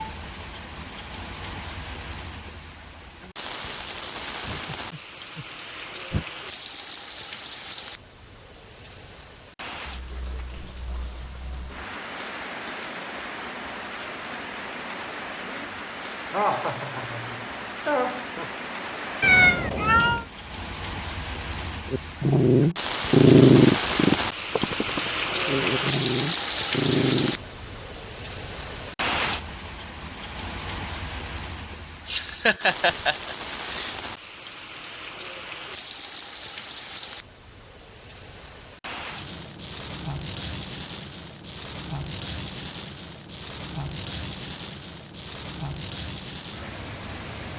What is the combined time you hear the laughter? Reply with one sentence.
The laughter can be heard for 6 seconds in total.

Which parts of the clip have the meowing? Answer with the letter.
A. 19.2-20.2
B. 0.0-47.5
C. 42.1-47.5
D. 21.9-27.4
A.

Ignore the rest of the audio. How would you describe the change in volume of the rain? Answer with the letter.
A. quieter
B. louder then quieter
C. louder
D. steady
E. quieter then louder
B.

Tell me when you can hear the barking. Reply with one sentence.
The barking can be heard from 21.9 to 27.4 s.